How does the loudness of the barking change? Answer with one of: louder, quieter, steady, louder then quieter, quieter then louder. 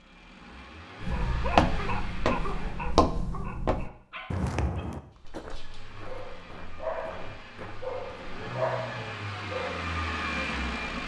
quieter then louder.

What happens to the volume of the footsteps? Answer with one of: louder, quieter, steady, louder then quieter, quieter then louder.
quieter.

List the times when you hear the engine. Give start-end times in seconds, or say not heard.
0.0-3.1, 5.5-11.0.